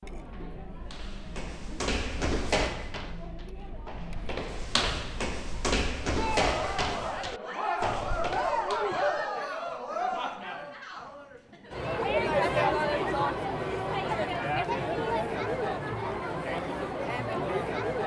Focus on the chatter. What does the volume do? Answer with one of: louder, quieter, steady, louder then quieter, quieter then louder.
louder.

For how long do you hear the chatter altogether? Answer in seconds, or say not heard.
18 s.